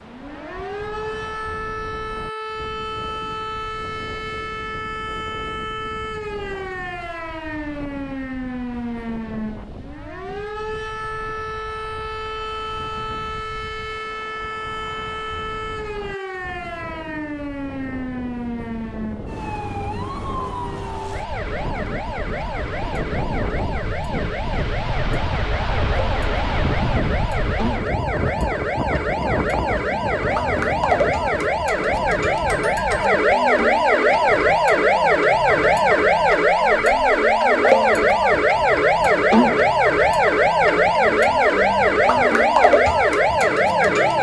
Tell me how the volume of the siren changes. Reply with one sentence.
The loudness of the siren goes up.